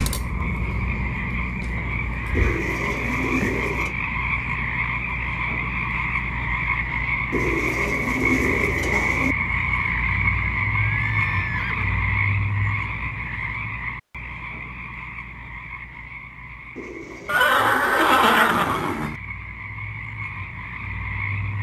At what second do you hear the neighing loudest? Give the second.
18 s.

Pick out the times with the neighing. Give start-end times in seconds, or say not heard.
1.8-2.6, 10.8-12.1, 17.2-19.1.